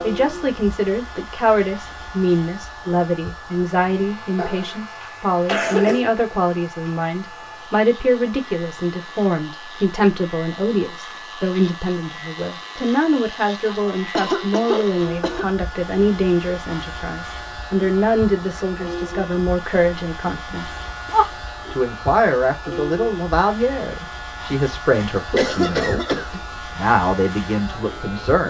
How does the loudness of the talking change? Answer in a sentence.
The loudness of the talking stays about the same.